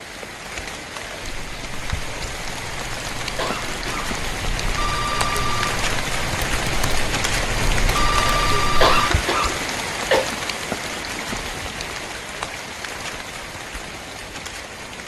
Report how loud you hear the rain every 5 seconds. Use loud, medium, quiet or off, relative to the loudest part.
medium, loud, medium.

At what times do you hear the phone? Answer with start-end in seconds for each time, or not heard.
4.4-5.8, 7.6-9.1.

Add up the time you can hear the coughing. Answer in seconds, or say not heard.
2 s.